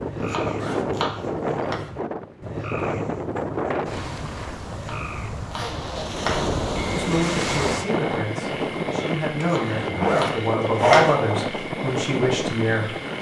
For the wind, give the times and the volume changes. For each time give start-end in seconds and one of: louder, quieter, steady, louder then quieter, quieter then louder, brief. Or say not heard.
0.0-13.1 steady.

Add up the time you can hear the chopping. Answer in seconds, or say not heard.
5 s.